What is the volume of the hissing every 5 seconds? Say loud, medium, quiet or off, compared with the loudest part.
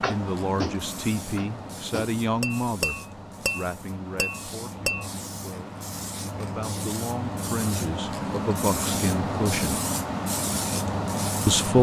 medium, loud, loud.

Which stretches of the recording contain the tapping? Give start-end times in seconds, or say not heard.
0.0-5.0.